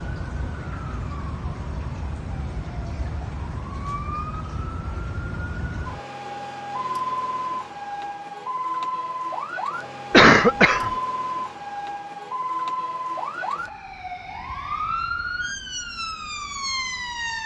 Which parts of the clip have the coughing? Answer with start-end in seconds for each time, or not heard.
10.1-10.9.